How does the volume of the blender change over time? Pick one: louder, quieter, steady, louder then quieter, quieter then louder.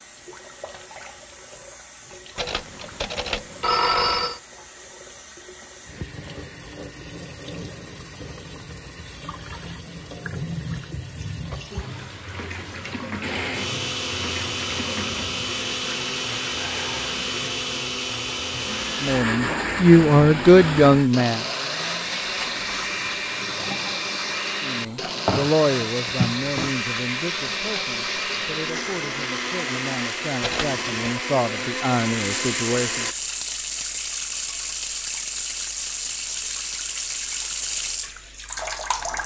steady.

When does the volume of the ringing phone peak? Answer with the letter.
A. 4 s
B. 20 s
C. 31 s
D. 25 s
A.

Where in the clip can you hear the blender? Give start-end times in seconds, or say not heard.
13.2-33.1.